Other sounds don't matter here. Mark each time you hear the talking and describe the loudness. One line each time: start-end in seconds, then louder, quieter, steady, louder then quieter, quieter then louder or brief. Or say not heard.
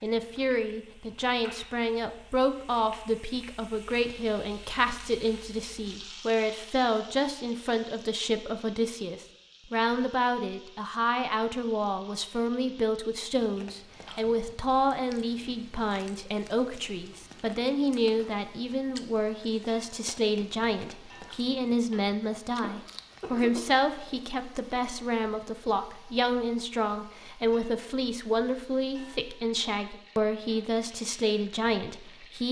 0.0-32.4 steady.